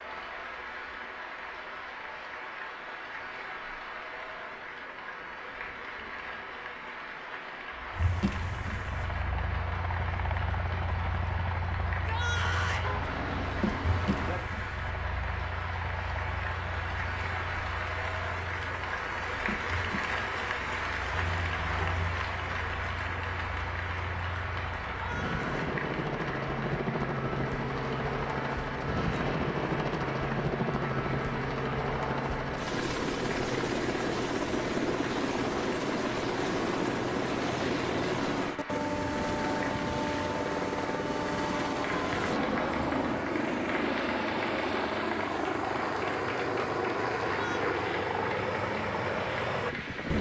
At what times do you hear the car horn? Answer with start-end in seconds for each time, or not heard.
12.8-14.4, 21.1-22.2, 42.1-43.3.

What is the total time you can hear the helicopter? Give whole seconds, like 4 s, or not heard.
42 s.